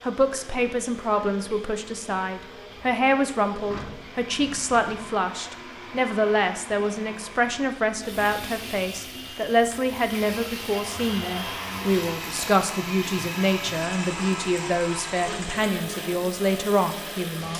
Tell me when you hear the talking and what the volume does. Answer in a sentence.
You can hear the talking from 0.0 to 17.5 s, at a steady volume.